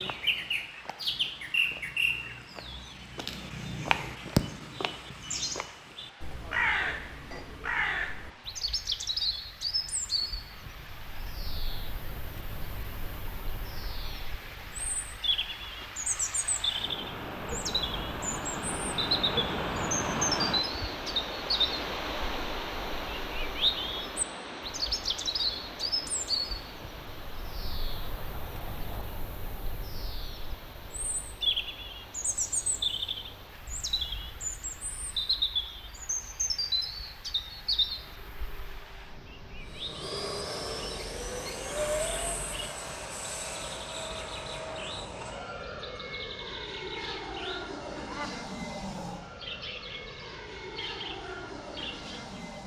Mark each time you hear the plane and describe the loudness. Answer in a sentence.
The plane can be heard from 39.6 to 52.6 s, getting quieter.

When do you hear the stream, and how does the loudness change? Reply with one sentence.
You can hear the stream from 0.0 to 52.6 s, getting louder then quieter.